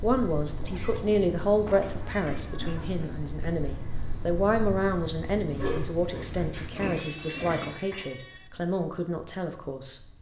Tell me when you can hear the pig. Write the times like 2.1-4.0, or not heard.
1.7-3.0, 5.5-8.1.